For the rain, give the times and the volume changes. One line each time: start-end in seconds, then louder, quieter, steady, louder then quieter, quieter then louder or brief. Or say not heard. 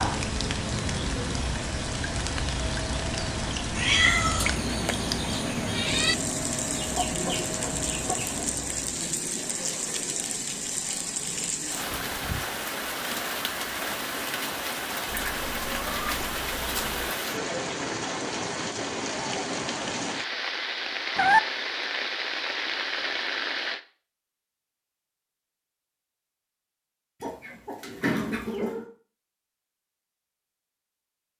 0.0-23.8 steady.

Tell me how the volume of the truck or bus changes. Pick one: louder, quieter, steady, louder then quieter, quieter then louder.
steady.